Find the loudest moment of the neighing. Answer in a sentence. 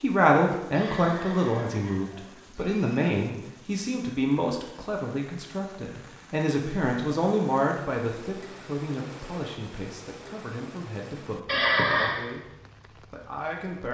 The loudest moment of the neighing is at 12 seconds.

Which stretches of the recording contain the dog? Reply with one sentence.
You can't hear the dog here.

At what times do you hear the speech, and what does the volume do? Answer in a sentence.
You can hear the speech from 0.0 to 13.8 s, getting quieter.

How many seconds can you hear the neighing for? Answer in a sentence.
You can hear the neighing for 3 seconds altogether.